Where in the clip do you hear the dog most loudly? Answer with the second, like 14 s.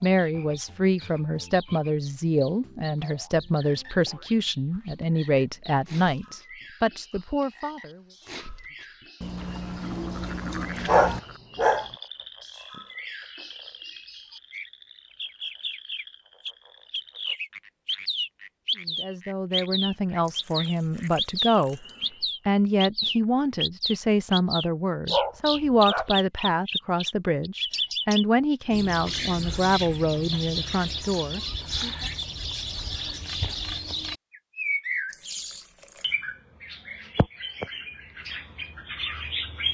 11 s.